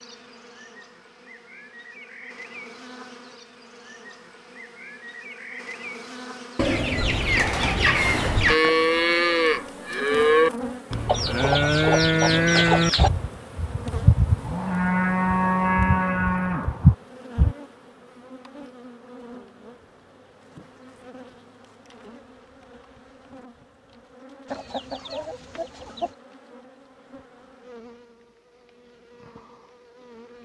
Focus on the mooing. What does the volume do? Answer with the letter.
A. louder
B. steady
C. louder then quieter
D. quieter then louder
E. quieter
B.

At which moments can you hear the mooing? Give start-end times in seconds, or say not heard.
8.4-17.6.